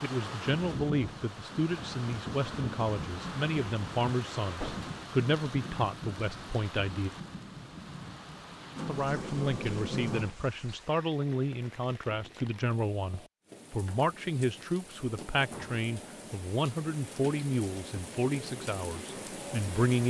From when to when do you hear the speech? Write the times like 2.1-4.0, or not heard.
0.0-7.1, 8.8-20.0.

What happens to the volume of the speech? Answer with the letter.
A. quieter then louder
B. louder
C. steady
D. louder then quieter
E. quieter
C.